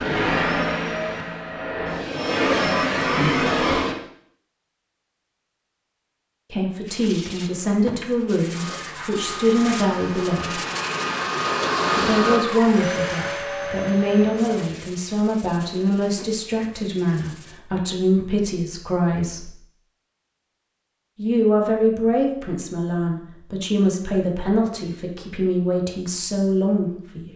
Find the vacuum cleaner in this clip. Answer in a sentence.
The vacuum cleaner can be heard from 0.0 to 4.0 s and from 8.5 to 14.7 s.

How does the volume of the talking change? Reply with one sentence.
The loudness of the talking stays about the same.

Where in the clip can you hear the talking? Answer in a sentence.
The talking can be heard from 6.5 to 10.6 s, from 11.9 to 19.5 s and from 21.1 to 27.3 s.